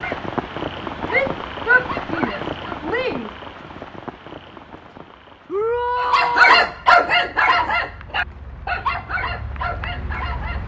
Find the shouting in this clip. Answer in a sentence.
You can hear the shouting from 1.1 to 3.3 s and from 5.5 to 6.6 s.